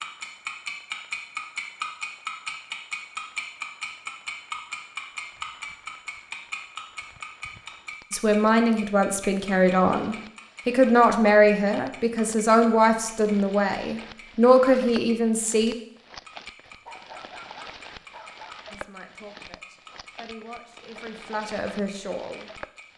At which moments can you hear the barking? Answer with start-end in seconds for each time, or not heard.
16.6-18.6.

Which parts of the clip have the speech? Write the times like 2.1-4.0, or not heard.
8.1-15.8, 18.7-22.5.